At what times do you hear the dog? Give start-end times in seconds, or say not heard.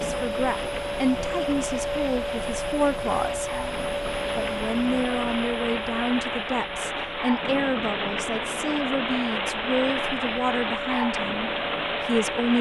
not heard.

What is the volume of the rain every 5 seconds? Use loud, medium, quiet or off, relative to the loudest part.
medium, loud, loud.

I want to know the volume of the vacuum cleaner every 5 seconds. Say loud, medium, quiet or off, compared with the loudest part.
loud, medium, medium.